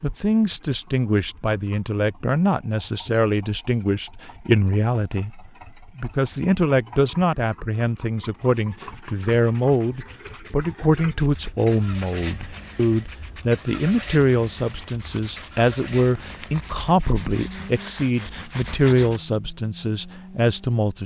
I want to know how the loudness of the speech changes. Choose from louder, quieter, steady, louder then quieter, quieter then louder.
steady.